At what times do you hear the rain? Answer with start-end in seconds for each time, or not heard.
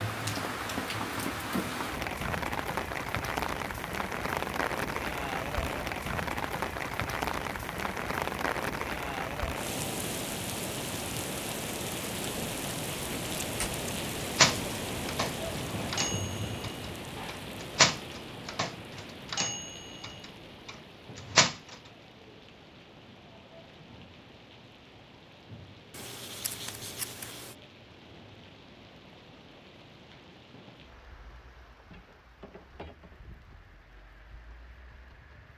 0.0-35.5.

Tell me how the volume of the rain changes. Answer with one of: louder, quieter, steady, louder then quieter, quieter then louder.
quieter.